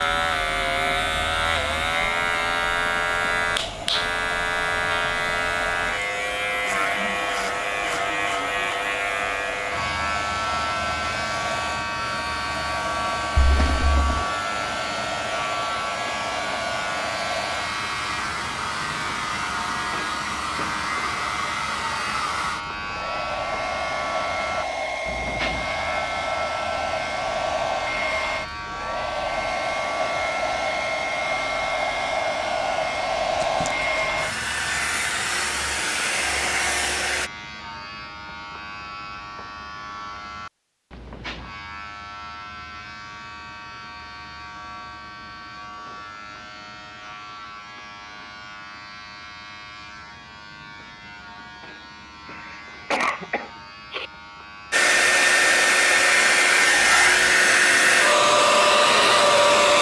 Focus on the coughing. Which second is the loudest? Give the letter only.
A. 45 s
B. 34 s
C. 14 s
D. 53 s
D.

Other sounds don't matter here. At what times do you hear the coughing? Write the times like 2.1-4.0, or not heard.
13.3-14.2, 33.4-34.2, 52.2-54.1.